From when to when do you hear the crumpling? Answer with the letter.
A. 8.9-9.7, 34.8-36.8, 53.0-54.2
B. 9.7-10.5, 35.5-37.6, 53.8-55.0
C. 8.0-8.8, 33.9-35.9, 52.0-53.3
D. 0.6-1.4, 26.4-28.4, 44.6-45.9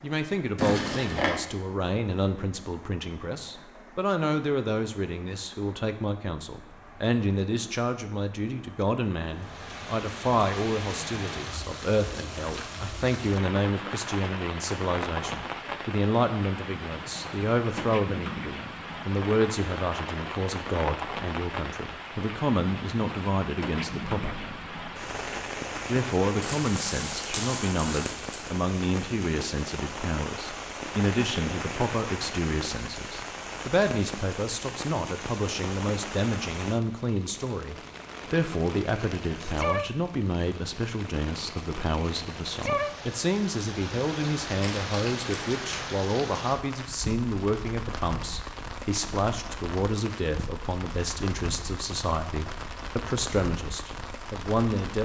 D.